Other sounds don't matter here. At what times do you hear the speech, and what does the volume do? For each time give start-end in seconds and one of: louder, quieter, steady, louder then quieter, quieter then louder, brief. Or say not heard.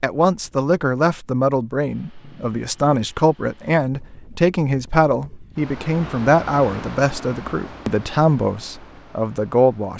0.0-9.9 steady.